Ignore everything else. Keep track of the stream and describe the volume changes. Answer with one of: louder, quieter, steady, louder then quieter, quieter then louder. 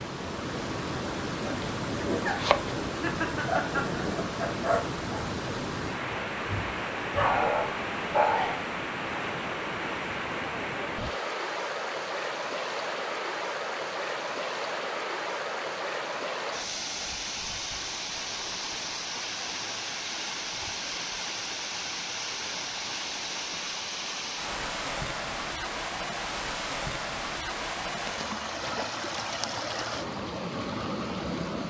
steady.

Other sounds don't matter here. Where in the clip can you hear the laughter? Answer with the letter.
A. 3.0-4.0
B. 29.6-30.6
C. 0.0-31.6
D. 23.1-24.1
A.